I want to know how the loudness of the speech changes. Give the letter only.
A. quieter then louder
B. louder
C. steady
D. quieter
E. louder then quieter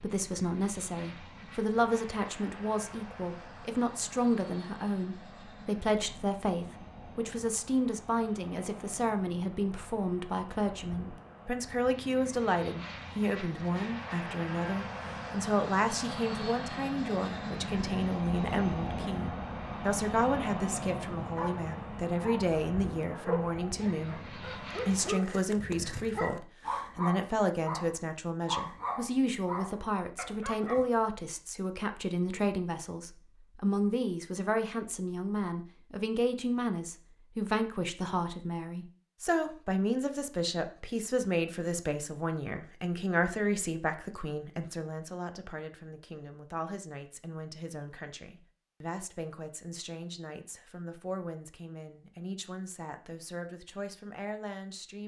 D.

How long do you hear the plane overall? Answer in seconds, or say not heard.
25 s.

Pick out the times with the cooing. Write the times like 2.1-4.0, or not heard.
not heard.